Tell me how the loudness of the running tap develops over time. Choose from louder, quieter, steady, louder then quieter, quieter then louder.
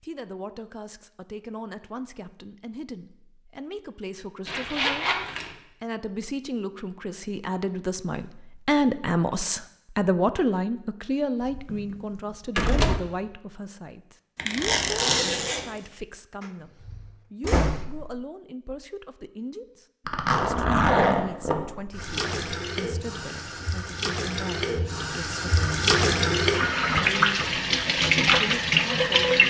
louder.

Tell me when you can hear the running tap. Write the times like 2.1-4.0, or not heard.
21.9-29.4.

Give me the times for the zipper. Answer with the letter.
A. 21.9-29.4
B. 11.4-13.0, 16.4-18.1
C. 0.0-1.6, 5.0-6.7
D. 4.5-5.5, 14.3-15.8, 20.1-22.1
D.